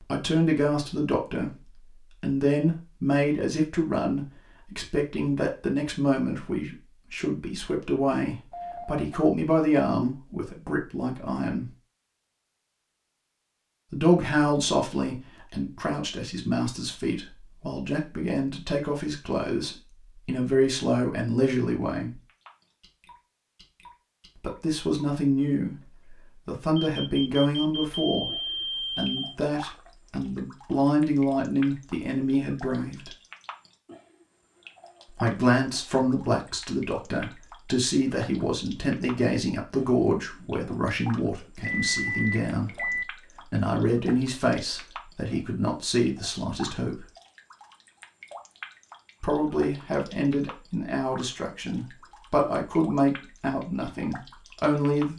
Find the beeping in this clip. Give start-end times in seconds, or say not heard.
8.5-9.1, 26.8-29.4, 41.6-43.0.